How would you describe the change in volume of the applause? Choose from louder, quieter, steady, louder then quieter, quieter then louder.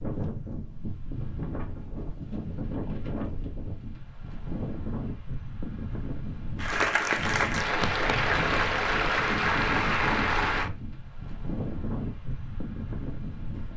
steady.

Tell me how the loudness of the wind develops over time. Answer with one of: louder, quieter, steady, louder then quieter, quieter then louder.
steady.